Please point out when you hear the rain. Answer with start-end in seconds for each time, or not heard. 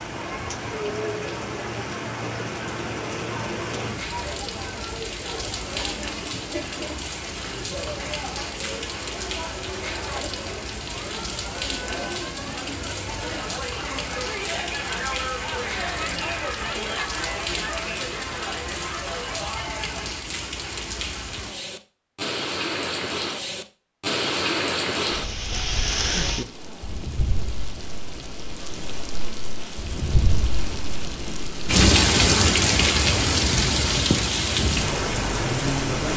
0.0-36.1.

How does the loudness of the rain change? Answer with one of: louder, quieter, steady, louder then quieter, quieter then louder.
louder.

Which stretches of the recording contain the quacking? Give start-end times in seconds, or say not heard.
not heard.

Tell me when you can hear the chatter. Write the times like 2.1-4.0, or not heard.
0.1-20.1.